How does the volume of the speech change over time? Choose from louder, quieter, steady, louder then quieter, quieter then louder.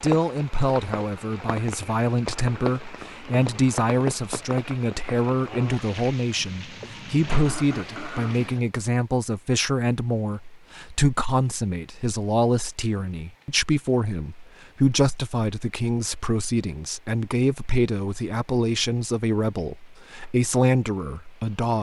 steady.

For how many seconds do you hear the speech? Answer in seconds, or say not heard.
22 s.